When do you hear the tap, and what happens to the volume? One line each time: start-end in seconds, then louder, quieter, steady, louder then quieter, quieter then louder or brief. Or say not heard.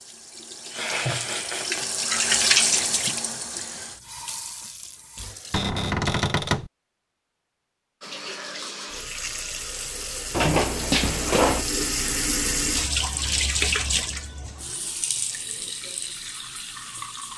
0.0-5.6 louder then quieter
8.0-17.3 louder then quieter.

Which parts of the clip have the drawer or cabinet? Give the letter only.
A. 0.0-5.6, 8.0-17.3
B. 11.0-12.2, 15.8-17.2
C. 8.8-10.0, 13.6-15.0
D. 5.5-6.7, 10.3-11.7
D.